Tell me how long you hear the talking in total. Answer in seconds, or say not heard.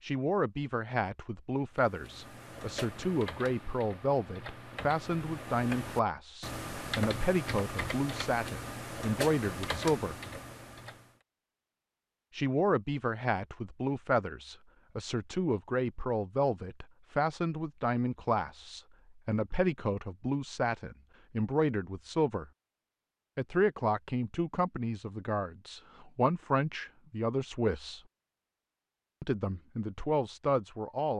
27 s.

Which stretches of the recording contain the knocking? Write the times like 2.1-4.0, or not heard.
not heard.